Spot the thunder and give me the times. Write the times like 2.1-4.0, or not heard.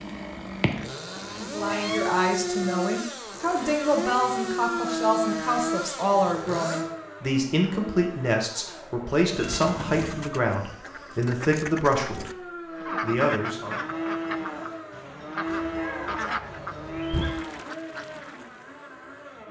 not heard.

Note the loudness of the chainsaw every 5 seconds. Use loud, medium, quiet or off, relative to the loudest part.
loud, loud, medium, medium.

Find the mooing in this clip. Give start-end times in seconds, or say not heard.
12.7-18.4.